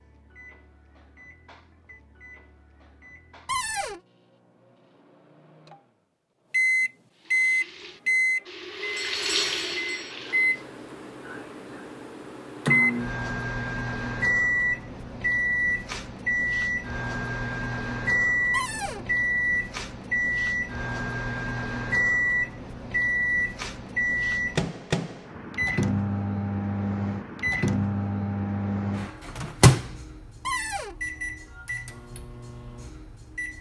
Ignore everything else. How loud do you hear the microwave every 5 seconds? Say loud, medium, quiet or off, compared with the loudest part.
quiet, loud, loud, loud, loud, loud, quiet.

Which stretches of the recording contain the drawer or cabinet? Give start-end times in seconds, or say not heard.
3.5-4.0, 18.5-19.1, 30.4-30.9.